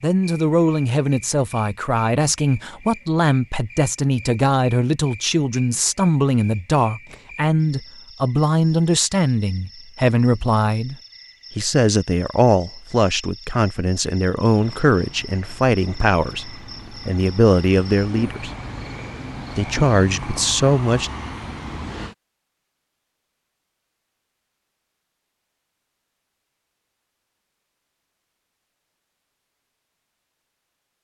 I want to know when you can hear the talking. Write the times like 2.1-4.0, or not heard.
0.0-10.9, 11.6-18.5, 19.6-21.1.